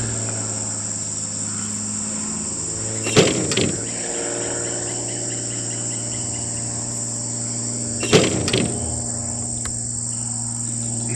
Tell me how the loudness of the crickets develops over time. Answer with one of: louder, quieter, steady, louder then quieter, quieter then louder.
steady.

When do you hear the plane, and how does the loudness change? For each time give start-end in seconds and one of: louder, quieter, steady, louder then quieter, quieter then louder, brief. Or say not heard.
0.0-11.1 steady.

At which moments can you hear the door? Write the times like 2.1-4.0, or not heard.
3.0-3.9, 8.0-8.8.